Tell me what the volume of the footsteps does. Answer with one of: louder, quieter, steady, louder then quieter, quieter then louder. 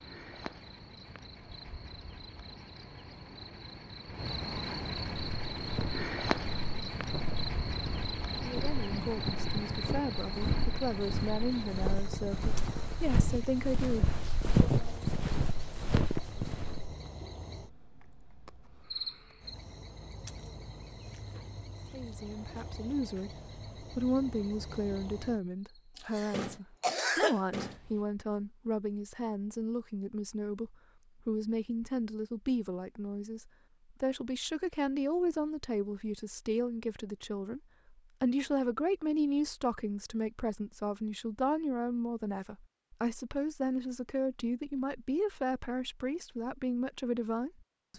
louder.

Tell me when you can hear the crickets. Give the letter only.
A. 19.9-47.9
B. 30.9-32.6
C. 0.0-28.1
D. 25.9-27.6
C.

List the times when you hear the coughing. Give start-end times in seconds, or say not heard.
25.9-27.6.